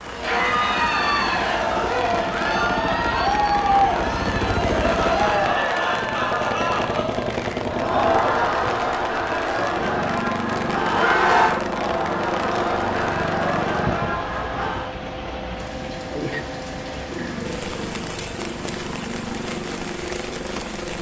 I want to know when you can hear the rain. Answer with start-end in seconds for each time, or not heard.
0.0-20.9.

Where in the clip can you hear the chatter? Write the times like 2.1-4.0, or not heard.
0.1-14.9.